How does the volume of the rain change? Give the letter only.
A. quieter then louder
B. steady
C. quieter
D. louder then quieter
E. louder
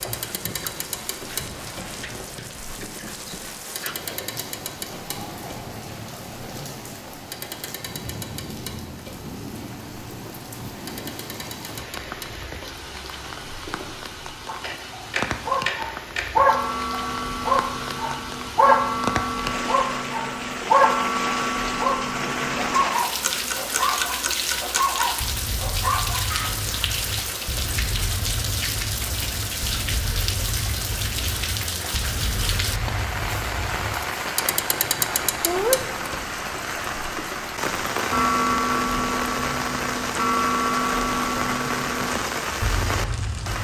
E.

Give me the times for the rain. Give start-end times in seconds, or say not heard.
0.0-43.5.